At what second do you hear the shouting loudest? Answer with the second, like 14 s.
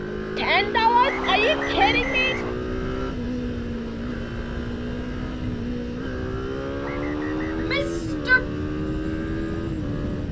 1 s.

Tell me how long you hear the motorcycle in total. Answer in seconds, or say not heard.
10 s.